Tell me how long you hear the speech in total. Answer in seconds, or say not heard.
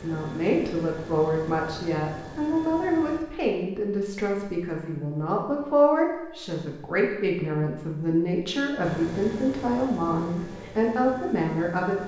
12 s.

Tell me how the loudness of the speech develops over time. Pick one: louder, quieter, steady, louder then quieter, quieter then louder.
steady.